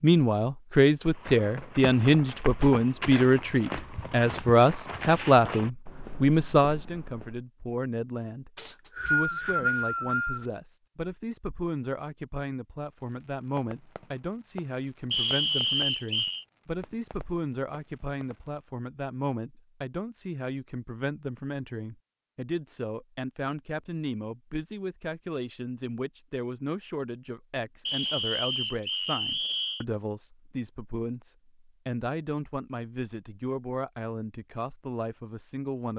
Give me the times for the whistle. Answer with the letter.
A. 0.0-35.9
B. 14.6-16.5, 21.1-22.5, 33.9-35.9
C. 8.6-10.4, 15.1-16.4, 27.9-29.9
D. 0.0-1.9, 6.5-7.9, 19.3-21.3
C.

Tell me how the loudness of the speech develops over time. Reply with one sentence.
The volume of the speech goes down.